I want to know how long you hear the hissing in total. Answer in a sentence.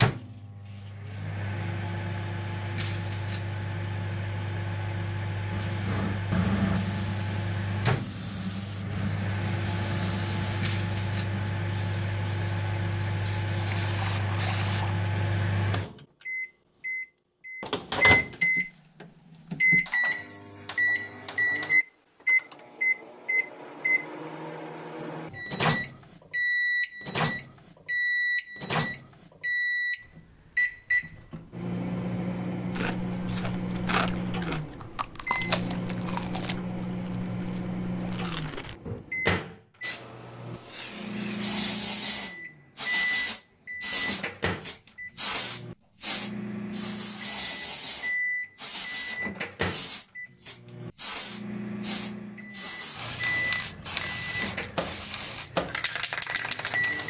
You can hear the hissing for 27 seconds altogether.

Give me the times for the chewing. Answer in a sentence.
The chewing can be heard from 32.7 to 39.0 s.